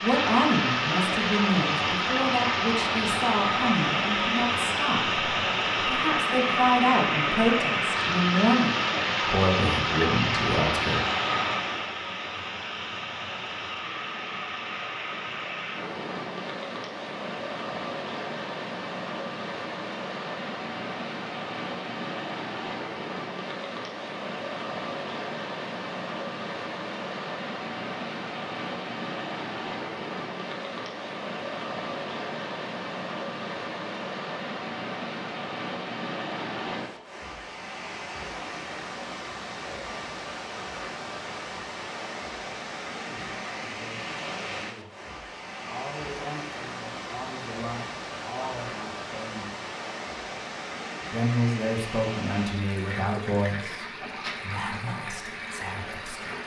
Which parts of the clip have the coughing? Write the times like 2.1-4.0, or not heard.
not heard.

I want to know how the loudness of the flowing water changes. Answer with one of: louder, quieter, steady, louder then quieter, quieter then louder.
quieter.